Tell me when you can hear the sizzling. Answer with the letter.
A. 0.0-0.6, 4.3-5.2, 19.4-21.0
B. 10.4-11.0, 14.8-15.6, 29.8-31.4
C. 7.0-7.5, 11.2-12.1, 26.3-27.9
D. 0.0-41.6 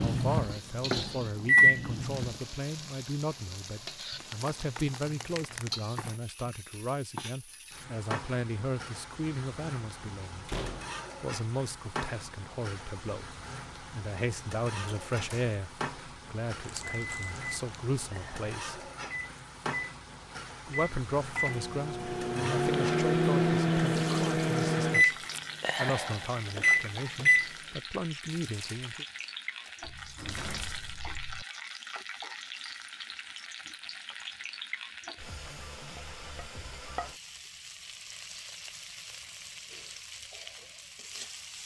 D.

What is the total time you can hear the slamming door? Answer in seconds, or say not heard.
3 s.